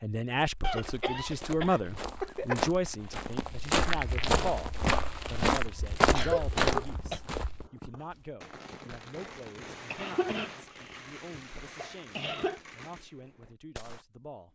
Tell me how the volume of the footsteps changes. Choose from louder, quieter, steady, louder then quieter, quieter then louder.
louder.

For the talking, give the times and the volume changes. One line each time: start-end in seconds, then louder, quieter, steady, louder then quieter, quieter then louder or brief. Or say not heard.
0.0-14.5 quieter.